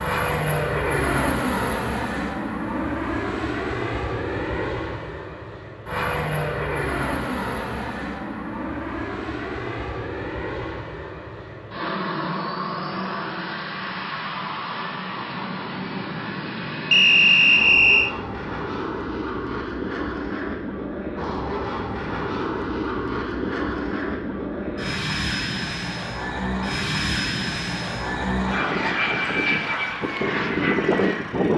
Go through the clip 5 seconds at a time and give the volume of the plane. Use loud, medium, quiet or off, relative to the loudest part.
loud, medium, medium, medium, medium, loud, loud.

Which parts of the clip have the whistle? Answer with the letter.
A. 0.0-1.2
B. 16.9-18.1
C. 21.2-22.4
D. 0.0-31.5
B.